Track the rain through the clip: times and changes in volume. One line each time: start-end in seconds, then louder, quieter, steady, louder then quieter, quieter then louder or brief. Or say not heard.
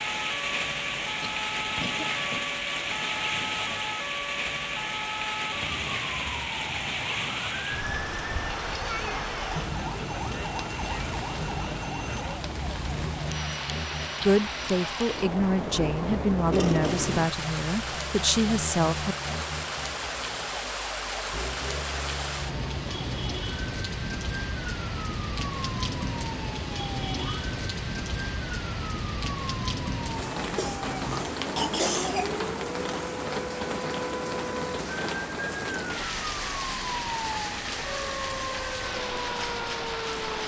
0.0-40.4 steady.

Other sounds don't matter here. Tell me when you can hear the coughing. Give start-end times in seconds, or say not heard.
1.2-2.5, 16.5-17.3, 30.6-32.4.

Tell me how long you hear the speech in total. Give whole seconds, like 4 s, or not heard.
5 s.